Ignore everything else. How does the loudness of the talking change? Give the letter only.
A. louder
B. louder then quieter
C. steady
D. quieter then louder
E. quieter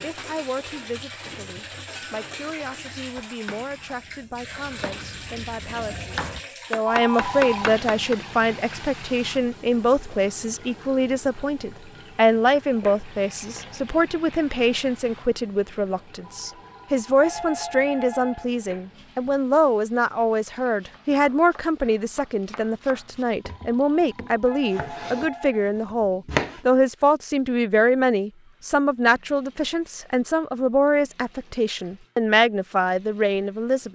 A.